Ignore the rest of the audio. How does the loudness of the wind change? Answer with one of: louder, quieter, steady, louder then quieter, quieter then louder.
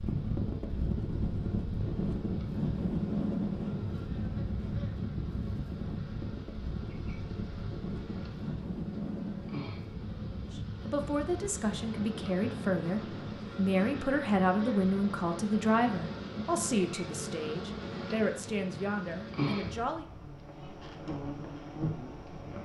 quieter.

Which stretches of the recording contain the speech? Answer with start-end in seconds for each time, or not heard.
10.5-20.1.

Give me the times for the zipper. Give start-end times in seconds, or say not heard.
not heard.